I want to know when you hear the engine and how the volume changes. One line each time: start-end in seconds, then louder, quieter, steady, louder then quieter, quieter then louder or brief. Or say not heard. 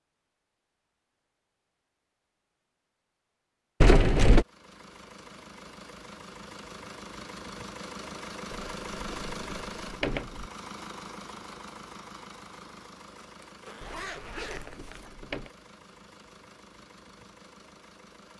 4.2-18.3 louder then quieter.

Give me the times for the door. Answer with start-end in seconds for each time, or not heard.
3.8-4.5, 8.5-10.5, 13.8-15.5.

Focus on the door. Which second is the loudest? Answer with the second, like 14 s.
4 s.